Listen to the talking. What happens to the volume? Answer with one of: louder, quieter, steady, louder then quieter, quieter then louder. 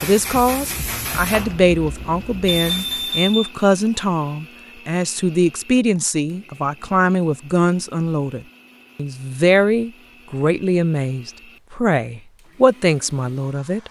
steady.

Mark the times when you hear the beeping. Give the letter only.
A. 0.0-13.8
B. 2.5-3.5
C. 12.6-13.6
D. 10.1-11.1
B.